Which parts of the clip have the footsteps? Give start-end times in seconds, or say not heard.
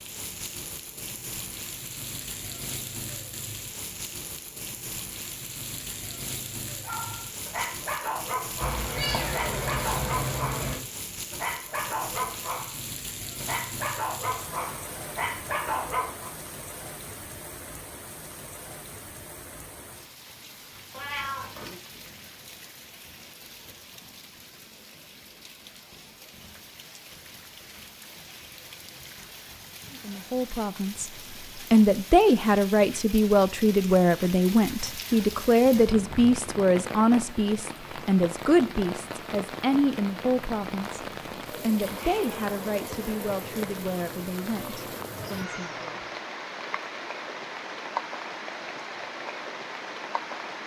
not heard.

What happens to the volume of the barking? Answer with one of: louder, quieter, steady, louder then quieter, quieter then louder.
steady.